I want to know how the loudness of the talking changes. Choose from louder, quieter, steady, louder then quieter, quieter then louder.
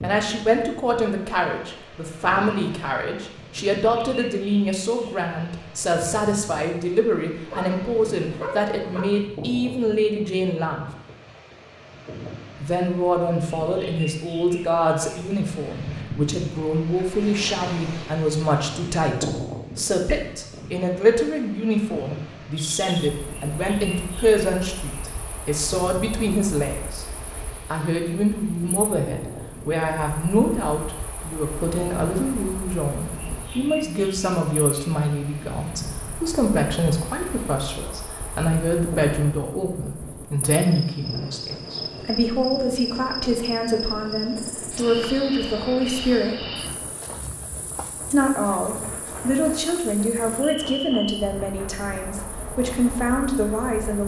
steady.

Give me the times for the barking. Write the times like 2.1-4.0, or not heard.
7.5-9.1.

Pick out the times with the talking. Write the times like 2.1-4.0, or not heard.
0.0-10.8, 12.6-27.1, 27.7-46.5, 48.1-54.0.